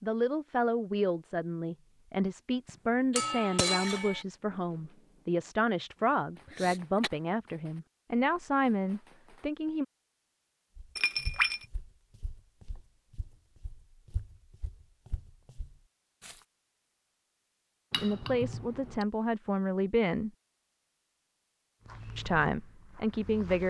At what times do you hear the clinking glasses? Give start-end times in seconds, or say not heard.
3.1-4.2, 10.9-11.7, 17.9-19.1.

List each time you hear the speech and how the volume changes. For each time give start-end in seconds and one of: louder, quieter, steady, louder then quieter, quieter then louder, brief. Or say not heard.
0.0-9.8 steady
17.9-20.3 brief
22.1-23.6 brief.